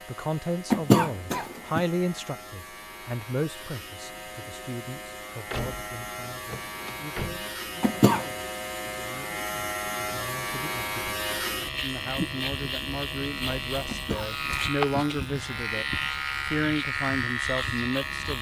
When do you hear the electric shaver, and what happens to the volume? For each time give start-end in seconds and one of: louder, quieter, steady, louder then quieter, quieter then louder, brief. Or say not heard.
0.0-18.3 louder.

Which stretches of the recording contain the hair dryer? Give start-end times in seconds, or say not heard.
not heard.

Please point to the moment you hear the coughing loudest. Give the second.
1 s.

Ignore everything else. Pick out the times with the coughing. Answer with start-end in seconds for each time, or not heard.
0.7-1.8, 7.8-8.2, 13.8-15.2.